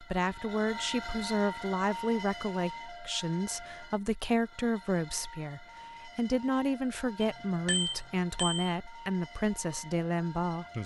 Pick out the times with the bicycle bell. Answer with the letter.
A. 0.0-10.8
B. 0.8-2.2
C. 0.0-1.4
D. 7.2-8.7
D.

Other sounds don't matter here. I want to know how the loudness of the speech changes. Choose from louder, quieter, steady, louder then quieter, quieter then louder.
steady.